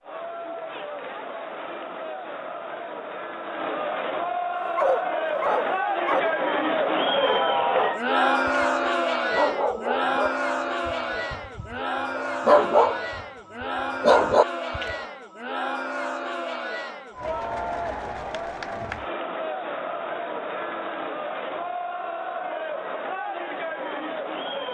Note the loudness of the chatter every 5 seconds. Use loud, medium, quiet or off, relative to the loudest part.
medium, loud, medium, medium, medium.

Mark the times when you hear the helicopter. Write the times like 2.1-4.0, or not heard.
not heard.